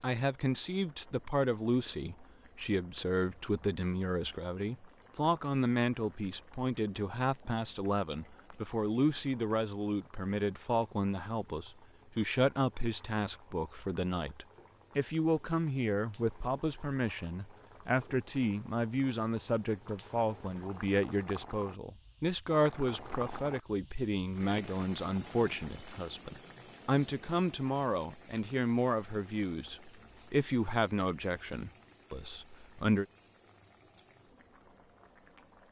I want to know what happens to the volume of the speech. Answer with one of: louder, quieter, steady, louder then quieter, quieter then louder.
steady.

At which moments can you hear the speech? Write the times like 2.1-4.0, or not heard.
0.0-33.0.